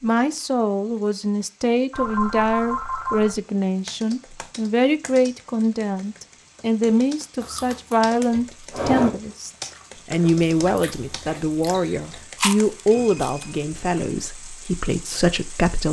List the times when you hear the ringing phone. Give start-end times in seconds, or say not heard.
1.9-3.4, 12.8-14.3.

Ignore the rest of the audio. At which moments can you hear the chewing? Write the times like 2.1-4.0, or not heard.
7.4-13.4.